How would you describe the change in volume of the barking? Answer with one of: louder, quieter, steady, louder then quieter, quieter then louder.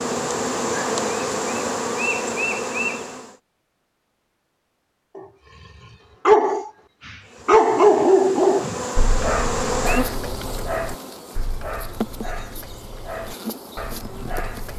quieter.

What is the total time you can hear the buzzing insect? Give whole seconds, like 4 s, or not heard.
11 s.